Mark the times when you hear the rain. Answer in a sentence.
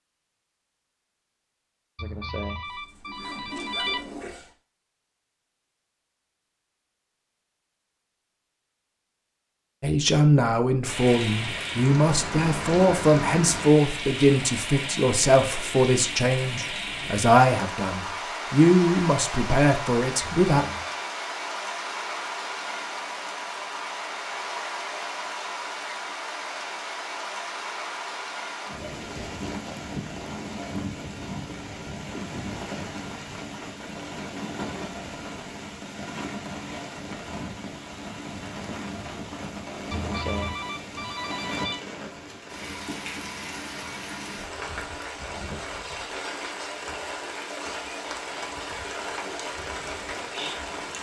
The rain can be heard from 10.8 to 50.9 s.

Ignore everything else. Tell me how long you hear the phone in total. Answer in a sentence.
You can hear the phone for 5 seconds altogether.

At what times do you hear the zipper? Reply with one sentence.
You can hear the zipper from 2.6 to 4.5 s.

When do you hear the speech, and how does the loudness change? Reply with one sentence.
The speech can be heard from 9.8 to 20.6 s, at a steady volume.